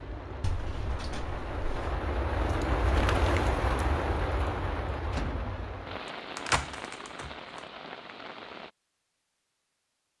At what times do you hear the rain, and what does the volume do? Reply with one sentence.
The rain can be heard from 0.0 to 8.7 s, getting louder then quieter.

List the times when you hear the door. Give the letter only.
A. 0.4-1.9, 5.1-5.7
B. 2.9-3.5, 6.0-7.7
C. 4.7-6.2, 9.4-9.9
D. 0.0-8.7
A.